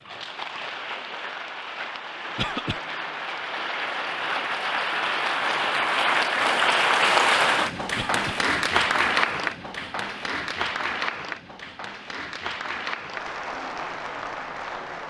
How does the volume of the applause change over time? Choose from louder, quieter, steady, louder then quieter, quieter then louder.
louder then quieter.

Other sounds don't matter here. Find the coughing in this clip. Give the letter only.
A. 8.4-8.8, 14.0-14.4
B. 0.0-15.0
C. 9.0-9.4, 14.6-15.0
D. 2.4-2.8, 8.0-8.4
D.